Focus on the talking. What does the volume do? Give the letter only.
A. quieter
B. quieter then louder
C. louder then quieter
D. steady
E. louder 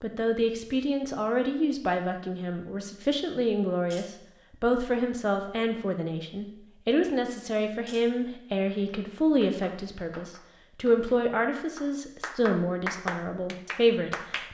D.